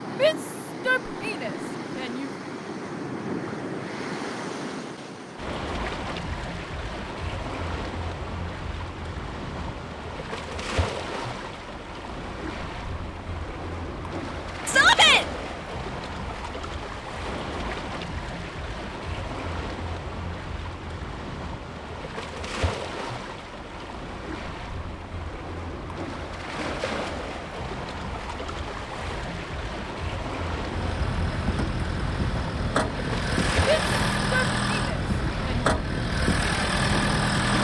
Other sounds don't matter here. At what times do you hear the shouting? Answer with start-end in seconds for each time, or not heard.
0.1-2.3, 14.7-15.2, 33.6-35.7.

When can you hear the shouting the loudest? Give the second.
15 s.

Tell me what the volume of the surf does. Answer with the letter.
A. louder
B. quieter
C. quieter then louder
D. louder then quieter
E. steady
E.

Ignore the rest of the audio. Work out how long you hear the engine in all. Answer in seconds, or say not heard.
7 s.